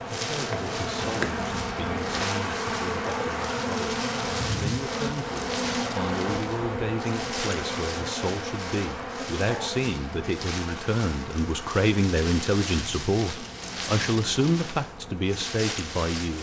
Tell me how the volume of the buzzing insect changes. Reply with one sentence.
The volume of the buzzing insect goes down.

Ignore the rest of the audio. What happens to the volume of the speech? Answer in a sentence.
The volume of the speech goes up.